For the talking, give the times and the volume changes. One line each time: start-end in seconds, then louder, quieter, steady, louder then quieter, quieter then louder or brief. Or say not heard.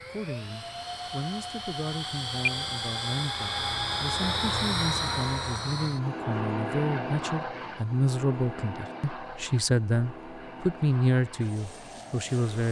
0.0-12.6 louder.